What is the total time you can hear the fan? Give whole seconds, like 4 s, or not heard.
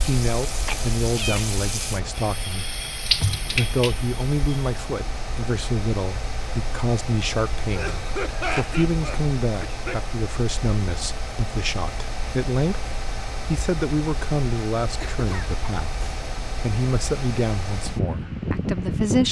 19 s.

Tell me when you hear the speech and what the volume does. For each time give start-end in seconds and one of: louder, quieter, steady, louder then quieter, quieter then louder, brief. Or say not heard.
0.0-2.8 brief
3.5-19.2 steady.